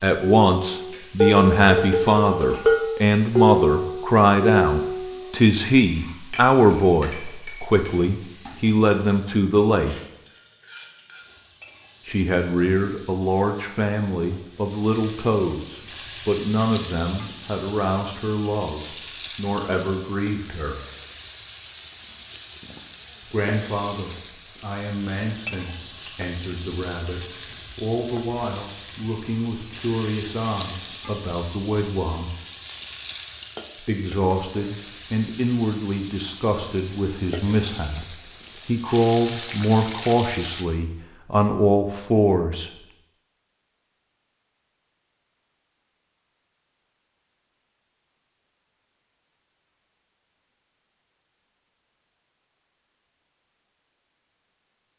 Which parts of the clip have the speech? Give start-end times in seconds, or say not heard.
0.0-9.9, 12.1-20.8, 23.3-32.3, 33.8-42.7.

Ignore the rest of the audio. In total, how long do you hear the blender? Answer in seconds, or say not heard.
not heard.